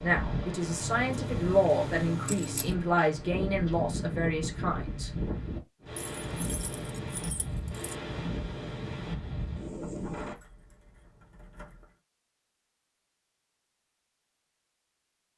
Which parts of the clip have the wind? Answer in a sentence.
The wind can be heard from 0.0 to 10.3 s.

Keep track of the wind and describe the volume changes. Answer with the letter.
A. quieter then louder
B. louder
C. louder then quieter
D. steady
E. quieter
D.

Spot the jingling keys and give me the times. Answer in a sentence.
The jingling keys can be heard from 0.8 to 2.8 s, from 6.0 to 8.0 s and from 10.3 to 12.0 s.